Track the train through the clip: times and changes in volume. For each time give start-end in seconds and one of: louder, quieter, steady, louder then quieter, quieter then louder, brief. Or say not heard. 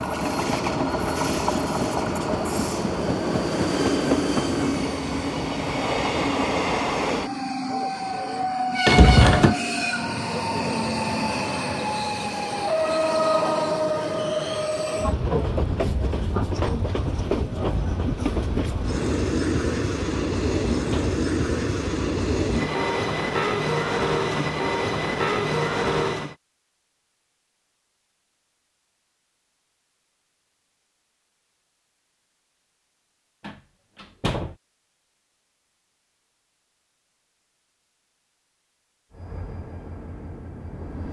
0.0-26.4 steady
39.1-41.0 brief.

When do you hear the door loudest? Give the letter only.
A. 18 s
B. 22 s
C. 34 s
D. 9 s
D.